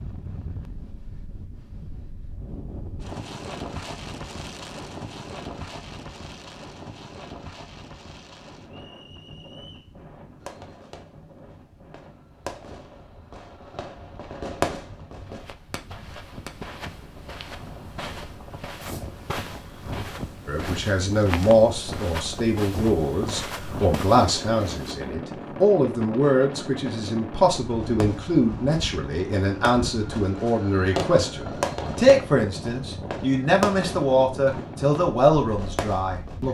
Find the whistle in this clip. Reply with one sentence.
The whistle can be heard from 8.7 to 9.9 s.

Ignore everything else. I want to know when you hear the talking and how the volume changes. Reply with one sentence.
You can hear the talking from 20.4 to 36.4 s, at a steady volume.